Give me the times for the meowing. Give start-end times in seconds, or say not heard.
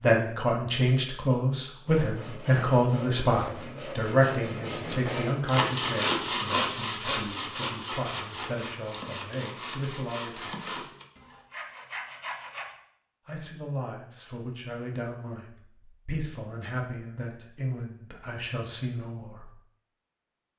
not heard.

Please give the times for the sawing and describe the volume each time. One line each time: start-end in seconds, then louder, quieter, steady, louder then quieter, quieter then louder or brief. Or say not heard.
1.9-12.8 louder then quieter.